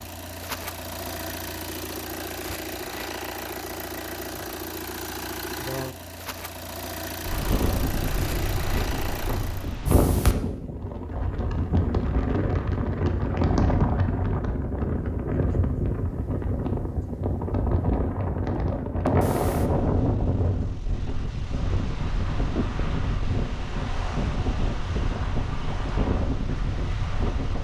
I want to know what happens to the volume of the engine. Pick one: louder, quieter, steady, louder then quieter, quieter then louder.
steady.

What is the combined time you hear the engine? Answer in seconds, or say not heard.
10 s.